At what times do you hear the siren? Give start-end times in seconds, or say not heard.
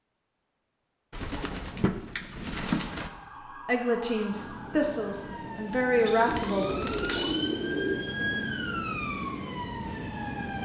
2.9-10.6.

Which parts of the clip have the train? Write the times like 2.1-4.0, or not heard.
4.3-10.6.